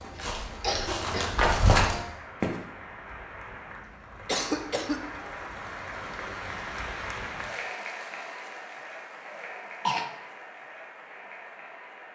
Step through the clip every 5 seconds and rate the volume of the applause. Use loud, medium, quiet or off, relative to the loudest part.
medium, loud, medium.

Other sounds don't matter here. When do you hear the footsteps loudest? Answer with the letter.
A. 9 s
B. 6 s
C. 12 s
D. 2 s
D.